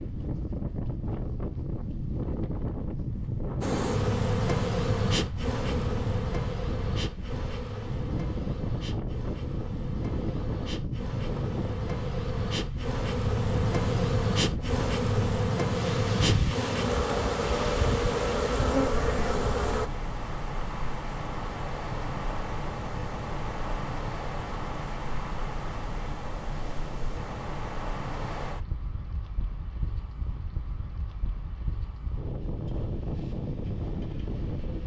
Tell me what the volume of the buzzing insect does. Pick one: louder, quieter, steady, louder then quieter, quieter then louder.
quieter then louder.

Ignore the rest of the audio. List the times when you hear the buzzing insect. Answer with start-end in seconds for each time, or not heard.
3.6-19.9.